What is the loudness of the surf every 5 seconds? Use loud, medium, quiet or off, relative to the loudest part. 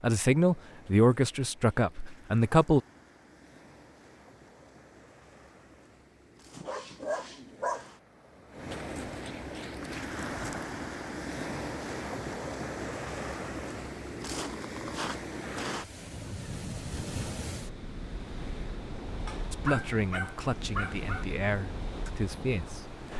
quiet, medium, loud, loud, medium.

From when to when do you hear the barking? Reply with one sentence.
You can hear the barking from 6.5 to 7.9 s and from 19.2 to 21.2 s.